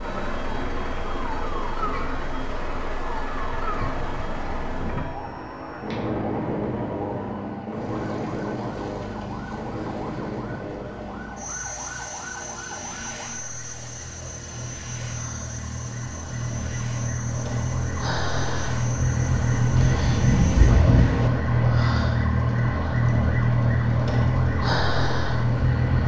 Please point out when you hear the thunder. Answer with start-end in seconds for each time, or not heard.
3.8-5.3, 19.8-21.3.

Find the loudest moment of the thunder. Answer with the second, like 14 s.
21 s.